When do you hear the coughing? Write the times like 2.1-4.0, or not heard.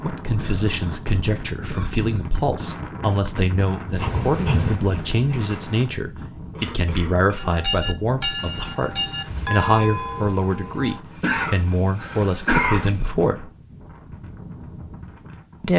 0.4-2.2, 6.5-7.7, 11.1-13.1.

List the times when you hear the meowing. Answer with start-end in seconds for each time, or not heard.
not heard.